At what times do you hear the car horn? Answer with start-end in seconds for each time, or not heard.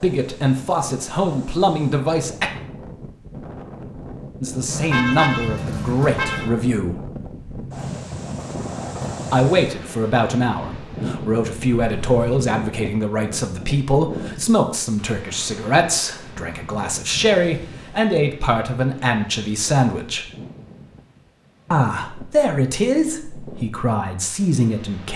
4.7-6.5, 11.8-12.4, 17.4-18.1.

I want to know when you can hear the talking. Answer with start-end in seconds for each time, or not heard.
0.0-2.5, 4.4-7.0, 9.3-20.2, 21.7-25.1.